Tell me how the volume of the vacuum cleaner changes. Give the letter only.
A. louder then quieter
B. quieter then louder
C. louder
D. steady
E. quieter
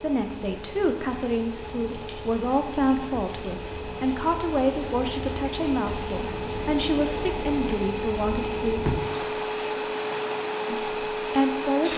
C.